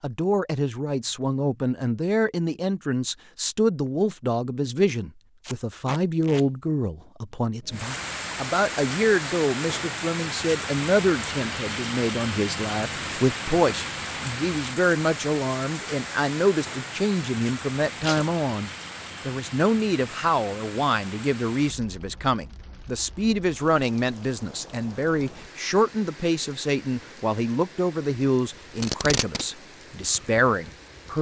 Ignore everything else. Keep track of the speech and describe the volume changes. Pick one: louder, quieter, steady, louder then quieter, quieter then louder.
steady.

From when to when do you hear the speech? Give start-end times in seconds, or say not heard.
0.0-31.1.